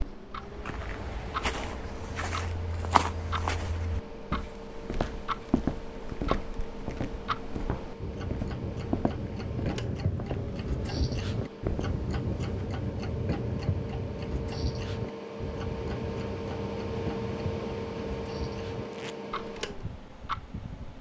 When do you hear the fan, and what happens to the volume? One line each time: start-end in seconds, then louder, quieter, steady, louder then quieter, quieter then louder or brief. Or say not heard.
0.0-20.9 louder.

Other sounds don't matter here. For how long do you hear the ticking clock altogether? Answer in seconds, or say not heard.
21 s.